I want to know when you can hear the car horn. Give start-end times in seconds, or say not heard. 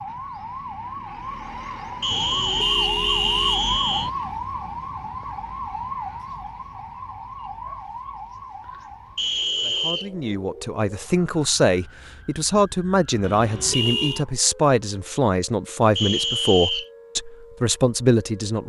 2.1-4.1, 13.2-14.2.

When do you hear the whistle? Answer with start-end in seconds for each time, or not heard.
2.0-4.1, 9.2-10.1, 15.9-16.9.